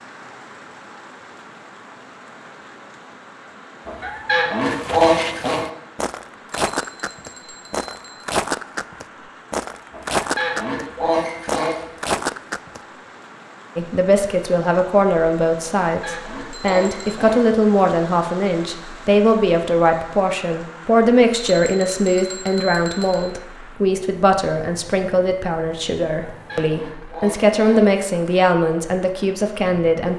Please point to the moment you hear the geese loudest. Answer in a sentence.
The volume of the geese peaks at 5 seconds.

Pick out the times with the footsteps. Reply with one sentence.
You can hear the footsteps from 4.6 to 10.8 s and from 11.4 to 12.8 s.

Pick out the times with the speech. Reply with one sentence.
You can hear the speech from 13.8 to 30.1 s.